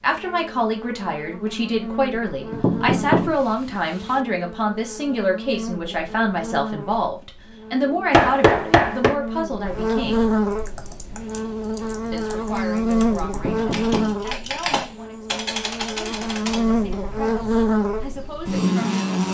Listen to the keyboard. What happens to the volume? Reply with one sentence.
The volume of the keyboard goes up.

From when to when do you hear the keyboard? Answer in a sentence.
The keyboard can be heard from 10.5 to 17.0 s.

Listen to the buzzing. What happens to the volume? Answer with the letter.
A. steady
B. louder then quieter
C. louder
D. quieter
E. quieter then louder
C.